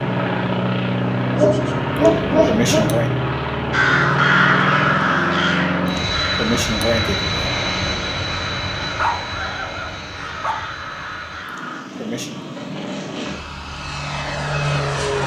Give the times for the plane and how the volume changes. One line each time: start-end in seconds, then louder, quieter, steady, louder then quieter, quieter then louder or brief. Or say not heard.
0.0-15.2 quieter then louder.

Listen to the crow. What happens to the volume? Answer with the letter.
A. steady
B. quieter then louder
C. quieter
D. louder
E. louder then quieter
C.